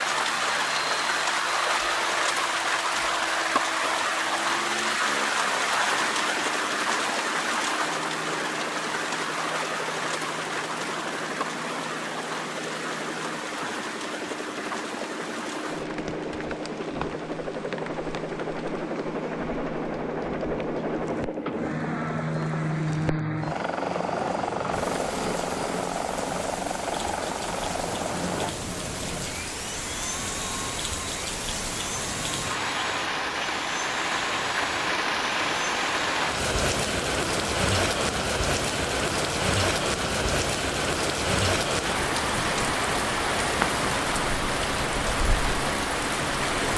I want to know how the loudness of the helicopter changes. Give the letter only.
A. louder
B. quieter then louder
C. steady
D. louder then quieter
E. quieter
D.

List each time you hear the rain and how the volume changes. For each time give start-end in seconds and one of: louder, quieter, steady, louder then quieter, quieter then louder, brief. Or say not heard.
0.0-46.7 quieter then louder.